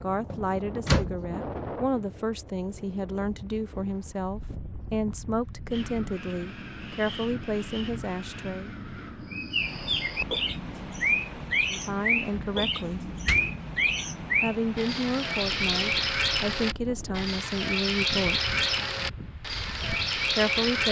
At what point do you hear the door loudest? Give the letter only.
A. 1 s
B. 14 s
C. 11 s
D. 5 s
A.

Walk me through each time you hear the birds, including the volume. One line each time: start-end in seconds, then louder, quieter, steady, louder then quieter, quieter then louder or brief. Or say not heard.
9.3-20.8 steady.